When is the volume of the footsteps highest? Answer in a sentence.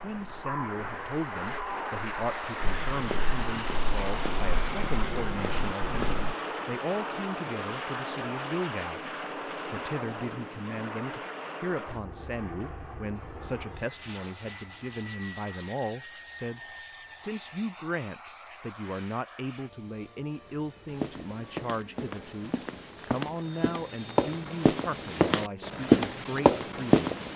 The loudest moment of the footsteps is at 26 seconds.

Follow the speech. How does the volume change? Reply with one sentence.
The loudness of the speech stays about the same.